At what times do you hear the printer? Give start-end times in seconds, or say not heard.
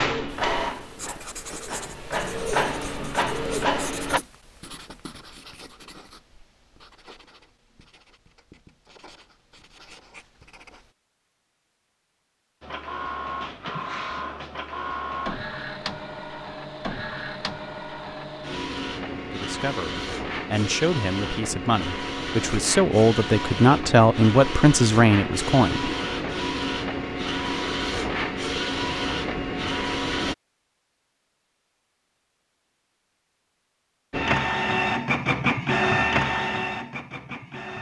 0.0-4.2, 12.6-30.4, 34.1-37.7.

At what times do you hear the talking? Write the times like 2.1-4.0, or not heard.
19.3-25.9.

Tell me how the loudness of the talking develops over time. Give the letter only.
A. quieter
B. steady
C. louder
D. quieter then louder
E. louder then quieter
C.